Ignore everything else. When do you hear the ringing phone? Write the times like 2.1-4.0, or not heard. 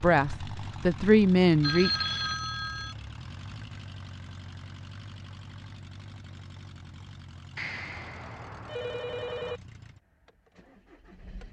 1.6-3.0, 7.5-9.6.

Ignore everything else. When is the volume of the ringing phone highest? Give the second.
2 s.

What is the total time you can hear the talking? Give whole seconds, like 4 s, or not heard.
2 s.